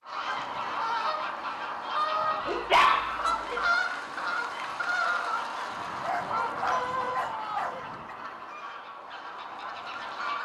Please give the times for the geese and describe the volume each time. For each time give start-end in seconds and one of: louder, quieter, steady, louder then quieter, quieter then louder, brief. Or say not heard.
0.1-10.3 quieter.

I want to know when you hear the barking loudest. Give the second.
3 s.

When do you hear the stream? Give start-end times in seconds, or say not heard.
not heard.